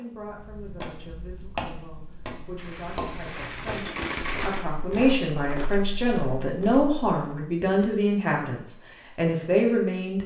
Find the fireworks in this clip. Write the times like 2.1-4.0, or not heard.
2.5-5.0.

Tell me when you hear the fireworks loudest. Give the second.
4 s.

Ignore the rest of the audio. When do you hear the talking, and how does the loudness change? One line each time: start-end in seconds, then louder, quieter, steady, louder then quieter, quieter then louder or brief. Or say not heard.
0.0-10.2 louder.